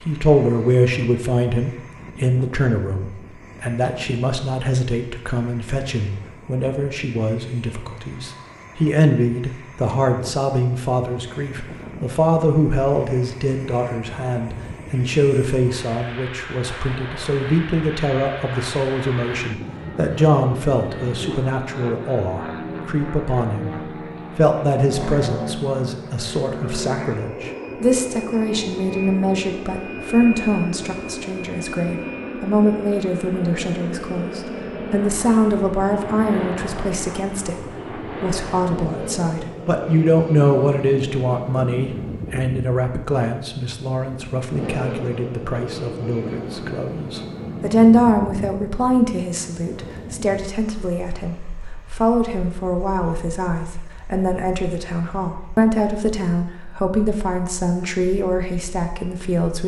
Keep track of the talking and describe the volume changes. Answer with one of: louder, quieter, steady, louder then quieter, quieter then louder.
steady.